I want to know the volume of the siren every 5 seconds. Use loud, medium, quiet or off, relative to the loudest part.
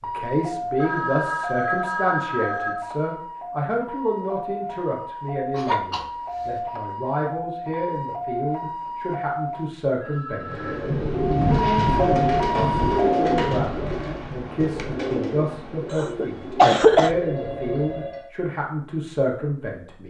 medium, medium, loud, off.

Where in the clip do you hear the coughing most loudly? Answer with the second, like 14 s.
17 s.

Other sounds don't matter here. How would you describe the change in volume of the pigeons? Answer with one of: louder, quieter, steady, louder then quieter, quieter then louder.
quieter.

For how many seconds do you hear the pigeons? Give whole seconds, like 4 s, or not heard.
8 s.